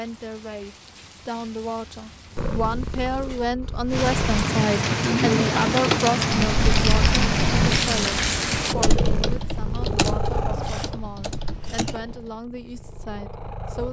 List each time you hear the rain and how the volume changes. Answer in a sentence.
The rain can be heard from 0.0 to 8.8 s, getting louder.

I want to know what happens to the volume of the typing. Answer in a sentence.
The volume of the typing goes down.